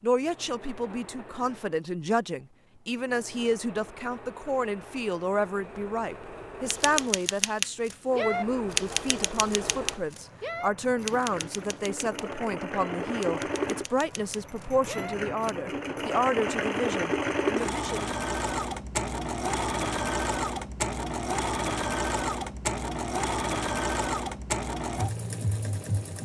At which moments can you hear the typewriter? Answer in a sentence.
You can hear the typewriter from 6.7 to 15.5 s.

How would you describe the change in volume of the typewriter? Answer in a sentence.
The volume of the typewriter goes down.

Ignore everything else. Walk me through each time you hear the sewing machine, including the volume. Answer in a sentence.
The sewing machine can be heard from 0.0 to 26.2 s, getting louder.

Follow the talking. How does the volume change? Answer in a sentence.
The loudness of the talking stays about the same.